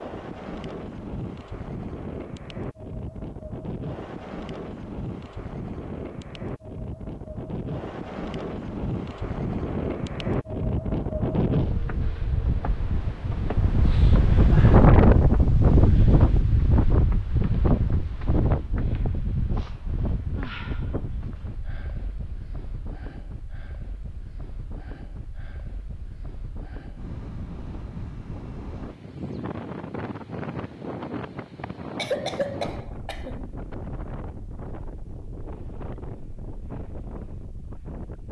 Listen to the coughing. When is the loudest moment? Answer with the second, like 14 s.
32 s.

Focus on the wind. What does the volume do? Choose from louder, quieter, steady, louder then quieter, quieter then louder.
louder then quieter.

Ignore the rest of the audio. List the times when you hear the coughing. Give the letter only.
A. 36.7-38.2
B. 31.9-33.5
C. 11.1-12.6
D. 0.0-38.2
B.